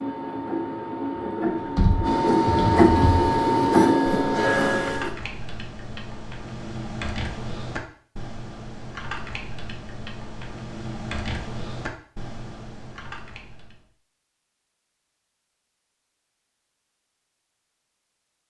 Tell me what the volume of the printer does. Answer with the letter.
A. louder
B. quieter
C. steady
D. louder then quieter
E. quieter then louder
A.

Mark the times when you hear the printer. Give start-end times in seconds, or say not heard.
0.0-5.1.